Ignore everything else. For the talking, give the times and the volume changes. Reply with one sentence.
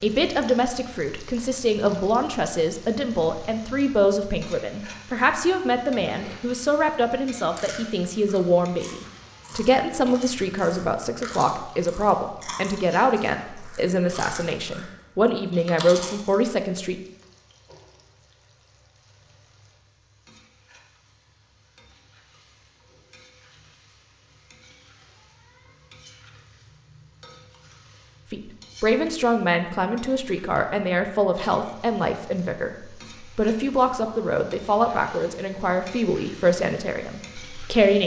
The talking can be heard from 0.0 to 16.9 s, at a steady volume; and from 28.3 to 38.0 s, at a steady volume.